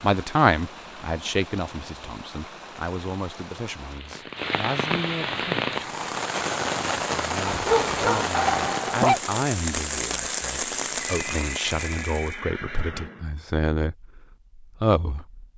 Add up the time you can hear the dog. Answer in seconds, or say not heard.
2 s.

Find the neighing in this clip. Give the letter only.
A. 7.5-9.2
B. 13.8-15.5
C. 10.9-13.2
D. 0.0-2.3
C.